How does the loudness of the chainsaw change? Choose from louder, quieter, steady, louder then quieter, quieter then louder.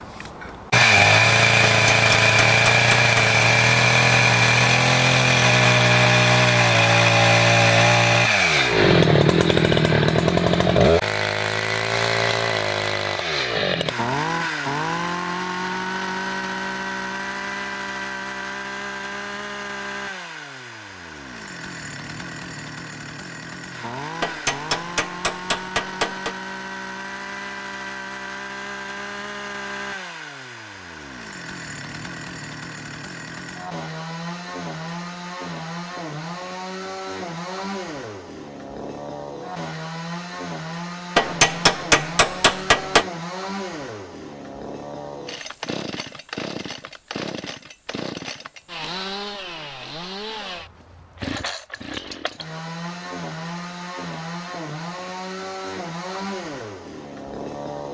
quieter.